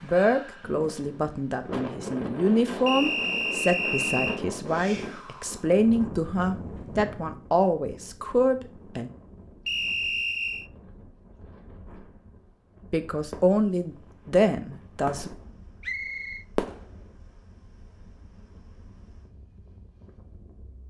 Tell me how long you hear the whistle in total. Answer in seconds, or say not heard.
3 s.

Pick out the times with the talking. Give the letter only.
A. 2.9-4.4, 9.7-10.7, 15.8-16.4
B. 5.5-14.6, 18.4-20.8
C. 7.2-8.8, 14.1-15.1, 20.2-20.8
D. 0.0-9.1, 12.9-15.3
D.